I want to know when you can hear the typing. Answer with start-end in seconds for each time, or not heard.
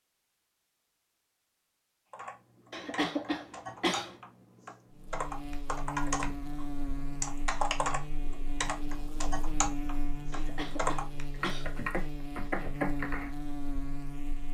2.1-13.3.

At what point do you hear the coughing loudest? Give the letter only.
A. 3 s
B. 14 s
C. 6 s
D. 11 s
A.